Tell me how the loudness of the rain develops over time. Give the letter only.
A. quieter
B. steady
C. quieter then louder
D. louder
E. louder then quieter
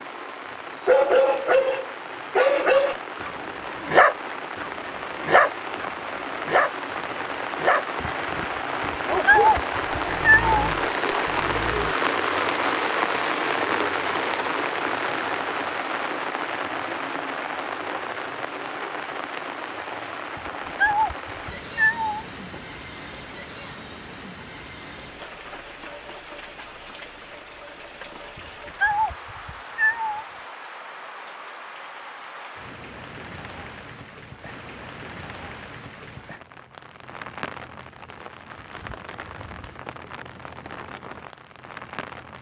E.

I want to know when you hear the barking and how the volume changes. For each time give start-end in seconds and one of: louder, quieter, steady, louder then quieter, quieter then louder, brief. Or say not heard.
0.8-11.9 quieter.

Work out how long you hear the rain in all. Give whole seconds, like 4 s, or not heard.
42 s.